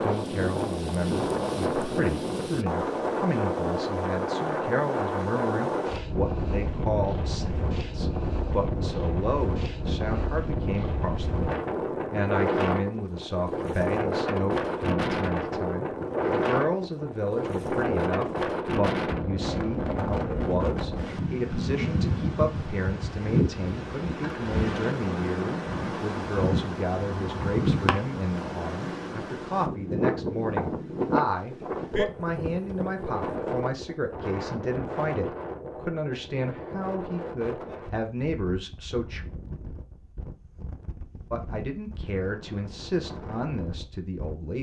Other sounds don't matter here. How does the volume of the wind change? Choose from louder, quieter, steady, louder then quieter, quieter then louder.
quieter.